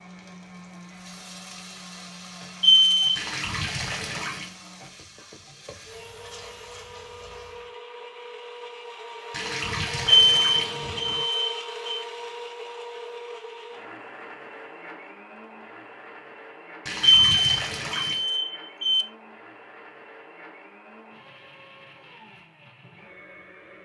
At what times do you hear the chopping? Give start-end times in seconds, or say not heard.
not heard.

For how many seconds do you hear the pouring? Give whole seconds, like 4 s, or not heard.
5 s.